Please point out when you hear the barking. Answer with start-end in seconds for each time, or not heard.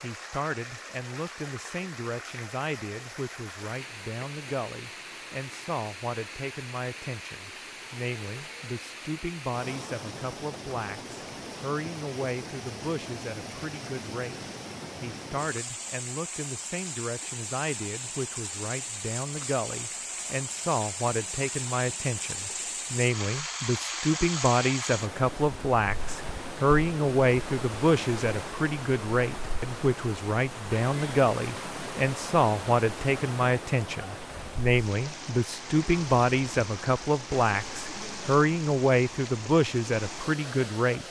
not heard.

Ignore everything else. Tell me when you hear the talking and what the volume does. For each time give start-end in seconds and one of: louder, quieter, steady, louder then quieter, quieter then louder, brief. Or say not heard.
0.0-14.4 steady
15.0-41.0 louder.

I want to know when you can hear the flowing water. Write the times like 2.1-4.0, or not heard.
0.0-41.0.